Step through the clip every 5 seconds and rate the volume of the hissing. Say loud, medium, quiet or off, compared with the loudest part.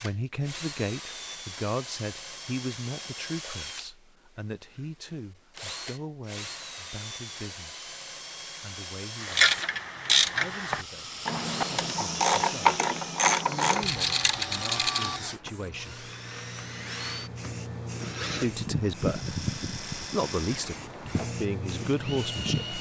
off, off, loud, loud, loud.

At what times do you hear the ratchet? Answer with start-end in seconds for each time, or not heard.
9.2-15.5.